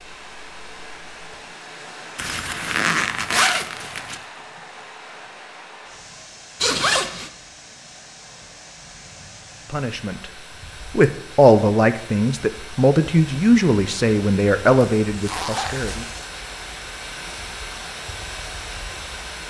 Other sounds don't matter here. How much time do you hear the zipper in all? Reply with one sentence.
You can hear the zipper for 4 seconds altogether.